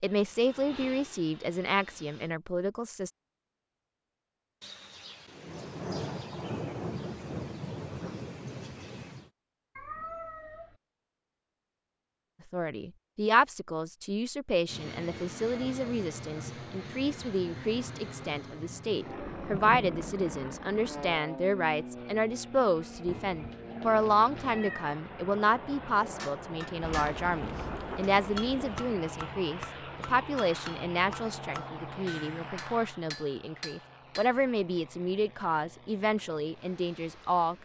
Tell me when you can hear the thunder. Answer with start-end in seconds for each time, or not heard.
4.6-9.3, 19.2-21.2, 26.8-28.9.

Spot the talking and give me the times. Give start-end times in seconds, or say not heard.
0.0-3.1, 12.5-37.5.